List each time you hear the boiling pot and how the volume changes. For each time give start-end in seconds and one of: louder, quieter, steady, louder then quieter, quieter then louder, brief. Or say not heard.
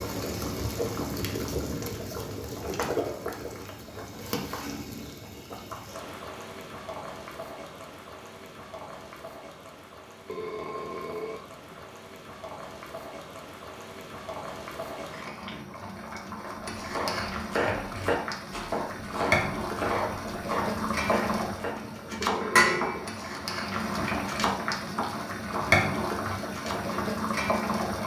0.0-28.0 quieter then louder.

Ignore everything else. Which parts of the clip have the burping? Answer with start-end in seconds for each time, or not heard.
10.2-11.9, 22.2-23.1.